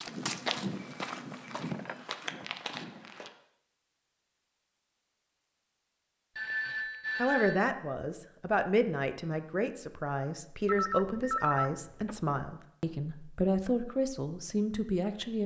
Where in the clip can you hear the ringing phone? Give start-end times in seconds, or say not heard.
0.1-2.0, 6.3-7.7, 10.7-12.4.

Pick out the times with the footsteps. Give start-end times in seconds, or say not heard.
0.0-3.3.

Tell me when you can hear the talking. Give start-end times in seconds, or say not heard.
7.2-15.4.